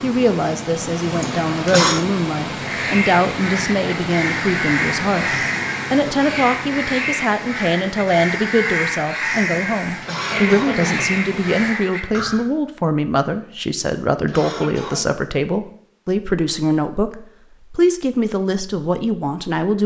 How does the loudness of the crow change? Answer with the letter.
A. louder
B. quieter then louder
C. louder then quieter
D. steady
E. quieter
D.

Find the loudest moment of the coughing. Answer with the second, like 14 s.
2 s.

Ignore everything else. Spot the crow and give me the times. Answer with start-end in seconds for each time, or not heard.
2.5-12.4.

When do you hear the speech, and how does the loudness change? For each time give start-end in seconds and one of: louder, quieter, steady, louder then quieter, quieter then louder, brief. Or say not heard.
0.0-19.8 steady.